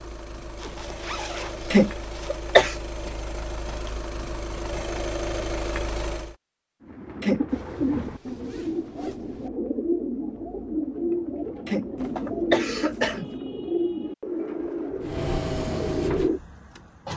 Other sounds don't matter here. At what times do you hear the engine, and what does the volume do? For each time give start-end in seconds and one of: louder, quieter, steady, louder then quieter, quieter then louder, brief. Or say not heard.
0.0-6.3 louder
15.0-17.1 brief.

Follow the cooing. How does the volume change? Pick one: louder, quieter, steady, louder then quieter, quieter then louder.
steady.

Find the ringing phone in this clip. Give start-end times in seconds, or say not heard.
not heard.